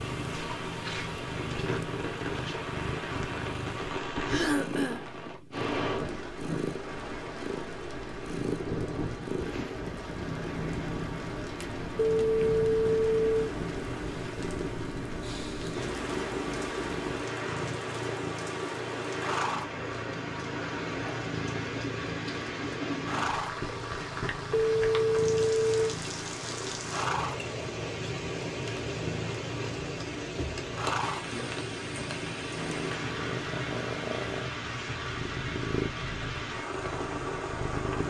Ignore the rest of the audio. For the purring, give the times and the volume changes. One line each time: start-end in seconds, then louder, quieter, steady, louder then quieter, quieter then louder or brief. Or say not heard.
0.0-38.0 steady.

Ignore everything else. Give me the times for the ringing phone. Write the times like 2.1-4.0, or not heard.
11.9-13.4, 24.5-25.9.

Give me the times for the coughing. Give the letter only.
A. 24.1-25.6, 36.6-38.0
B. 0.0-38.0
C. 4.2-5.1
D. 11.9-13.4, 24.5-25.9
C.